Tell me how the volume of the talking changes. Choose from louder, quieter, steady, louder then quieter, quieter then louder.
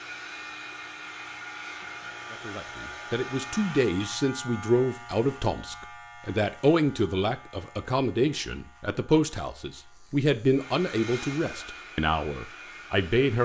steady.